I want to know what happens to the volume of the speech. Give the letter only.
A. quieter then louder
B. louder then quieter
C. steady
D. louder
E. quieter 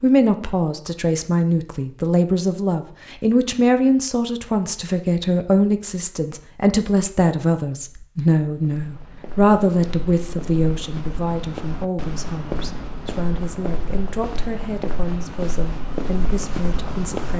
E.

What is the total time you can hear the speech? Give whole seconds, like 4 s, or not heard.
17 s.